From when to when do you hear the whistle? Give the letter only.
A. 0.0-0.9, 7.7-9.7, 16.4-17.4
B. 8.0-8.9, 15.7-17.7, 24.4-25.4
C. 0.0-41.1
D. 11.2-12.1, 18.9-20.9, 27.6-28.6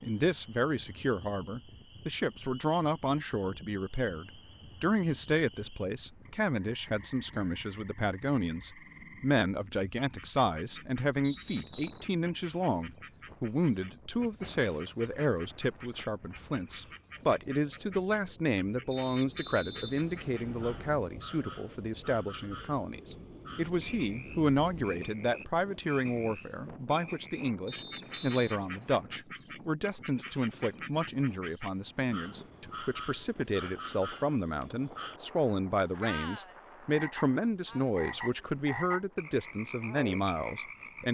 D.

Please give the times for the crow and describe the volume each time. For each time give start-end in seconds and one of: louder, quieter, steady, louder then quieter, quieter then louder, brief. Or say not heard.
not heard.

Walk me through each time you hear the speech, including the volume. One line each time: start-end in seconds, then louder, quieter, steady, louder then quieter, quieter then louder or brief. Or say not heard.
0.0-41.1 steady.